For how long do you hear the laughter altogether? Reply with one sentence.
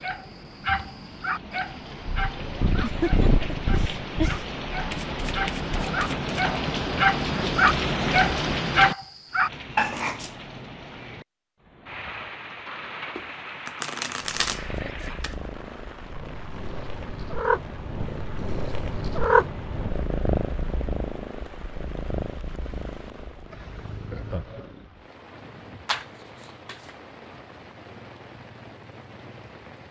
The laughter can be heard for 3 seconds in total.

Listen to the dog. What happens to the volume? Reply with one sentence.
The volume of the dog goes down, then up.